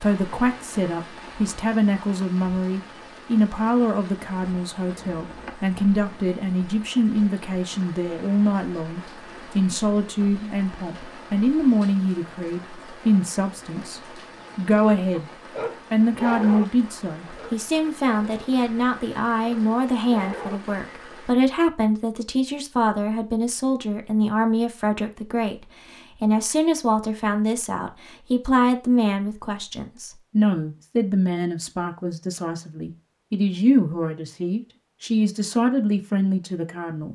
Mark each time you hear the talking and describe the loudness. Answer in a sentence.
The talking can be heard from 0.0 to 15.3 s, at a steady volume; and from 15.9 to 37.1 s, at a steady volume.